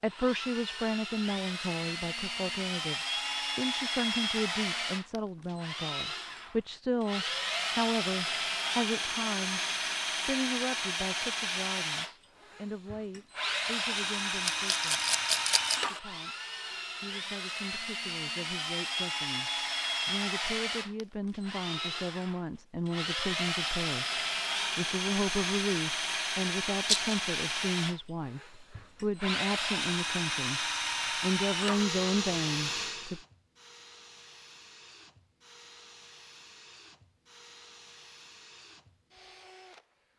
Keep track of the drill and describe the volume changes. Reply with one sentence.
The volume of the drill goes down.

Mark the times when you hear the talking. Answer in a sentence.
The talking can be heard from 0.0 to 15.0 s, from 15.9 to 16.4 s and from 17.0 to 33.2 s.